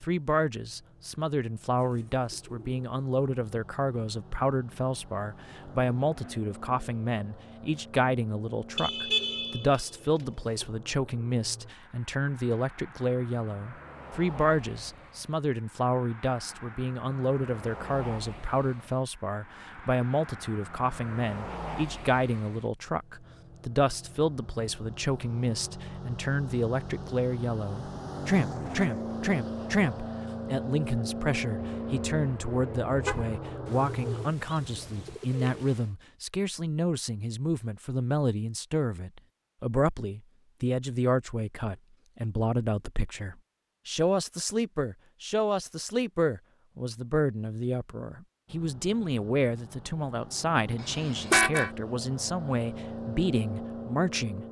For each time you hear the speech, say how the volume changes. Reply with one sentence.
The speech can be heard from 0.0 to 54.4 s, at a steady volume.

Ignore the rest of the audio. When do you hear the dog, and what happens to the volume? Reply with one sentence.
You can't hear the dog here.